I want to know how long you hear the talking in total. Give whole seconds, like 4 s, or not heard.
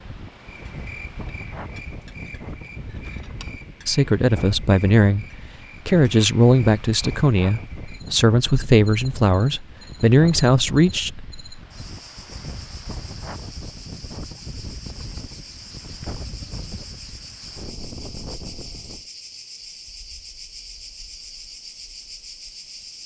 7 s.